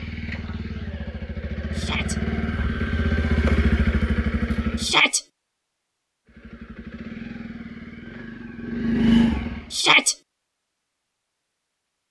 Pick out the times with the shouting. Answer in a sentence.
The shouting can be heard from 1.7 to 2.1 s, from 4.8 to 5.2 s and from 9.7 to 10.2 s.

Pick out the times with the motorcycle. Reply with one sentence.
The motorcycle can be heard from 0.0 to 5.0 s and from 6.2 to 9.8 s.